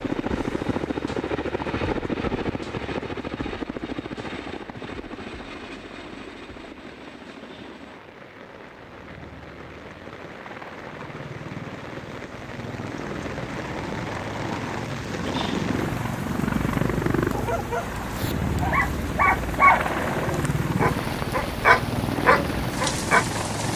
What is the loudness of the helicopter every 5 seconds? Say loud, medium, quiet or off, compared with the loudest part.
loud, quiet, medium, loud, loud.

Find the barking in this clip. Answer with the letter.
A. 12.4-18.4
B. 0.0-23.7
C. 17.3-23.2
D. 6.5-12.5
C.